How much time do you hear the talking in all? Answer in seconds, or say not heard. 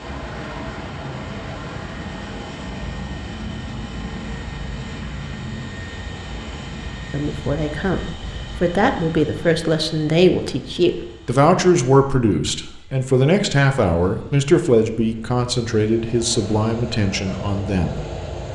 11 s.